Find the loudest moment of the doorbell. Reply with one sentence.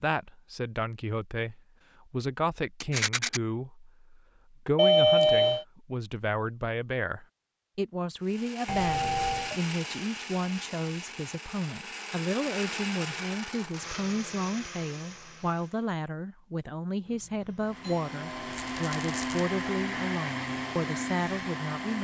The loudest moment of the doorbell is at 5 seconds.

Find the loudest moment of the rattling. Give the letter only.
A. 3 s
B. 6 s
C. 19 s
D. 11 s
A.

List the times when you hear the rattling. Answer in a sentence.
The rattling can be heard from 2.8 to 3.4 s and from 18.5 to 19.4 s.